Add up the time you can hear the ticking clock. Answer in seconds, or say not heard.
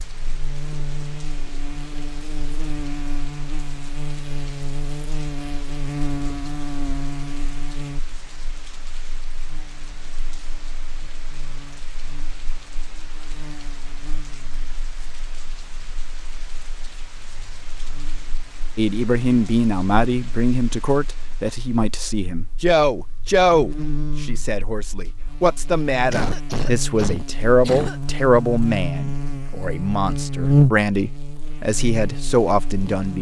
not heard.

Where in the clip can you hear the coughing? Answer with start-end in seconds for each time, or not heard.
26.1-28.0.